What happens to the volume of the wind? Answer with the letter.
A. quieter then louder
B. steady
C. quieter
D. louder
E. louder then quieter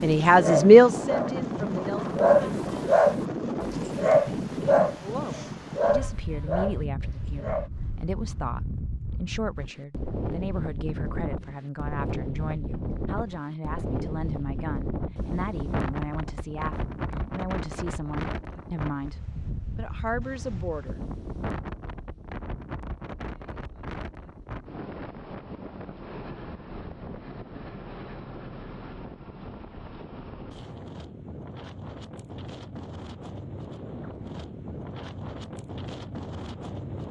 C.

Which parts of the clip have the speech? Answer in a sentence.
The speech can be heard from 0.0 to 2.0 s and from 5.0 to 21.0 s.